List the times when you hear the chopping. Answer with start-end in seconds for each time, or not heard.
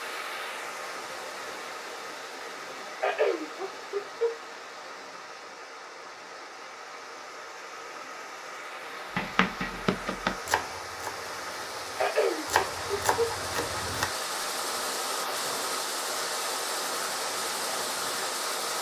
9.2-14.4.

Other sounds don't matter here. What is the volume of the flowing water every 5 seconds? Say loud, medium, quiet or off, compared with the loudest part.
medium, medium, loud, loud.